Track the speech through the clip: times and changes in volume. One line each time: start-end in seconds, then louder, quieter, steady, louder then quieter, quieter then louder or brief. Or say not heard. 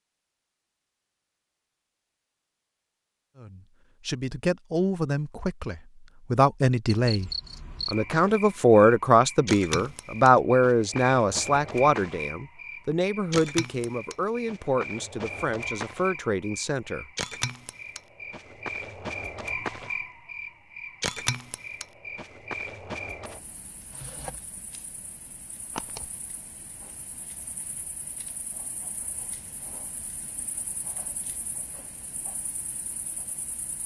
3.4-17.1 louder then quieter.